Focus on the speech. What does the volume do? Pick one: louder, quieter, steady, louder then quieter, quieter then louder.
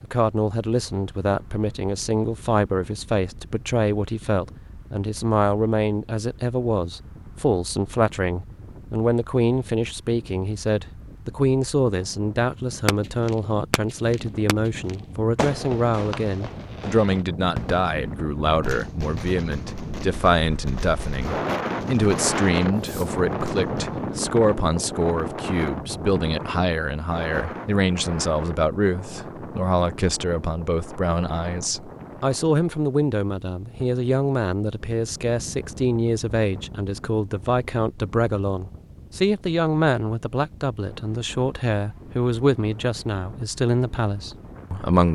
steady.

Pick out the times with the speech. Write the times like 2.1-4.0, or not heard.
0.0-45.1.